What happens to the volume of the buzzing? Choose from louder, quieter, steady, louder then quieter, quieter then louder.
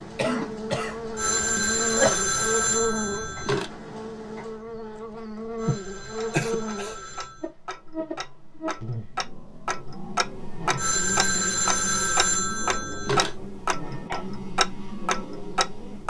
quieter.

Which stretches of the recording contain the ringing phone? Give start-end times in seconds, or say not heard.
1.1-3.7, 5.5-7.5, 10.8-13.3.